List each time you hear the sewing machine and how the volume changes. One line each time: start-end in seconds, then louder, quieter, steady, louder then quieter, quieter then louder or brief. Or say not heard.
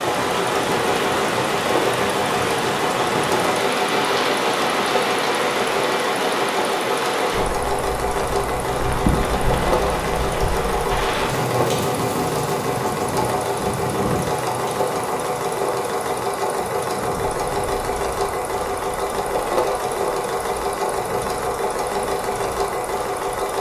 0.0-23.5 steady.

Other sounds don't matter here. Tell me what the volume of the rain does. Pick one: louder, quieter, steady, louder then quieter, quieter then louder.
quieter.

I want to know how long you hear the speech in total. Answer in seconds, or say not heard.
not heard.